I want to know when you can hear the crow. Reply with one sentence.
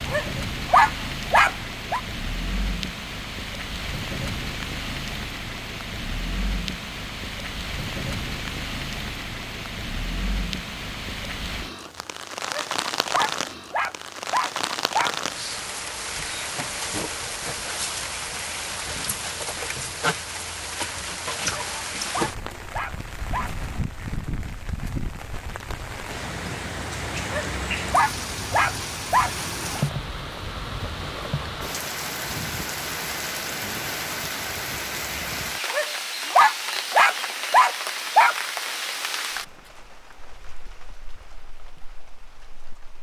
You can't hear the crow here.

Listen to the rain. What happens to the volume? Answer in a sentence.
The loudness of the rain stays about the same.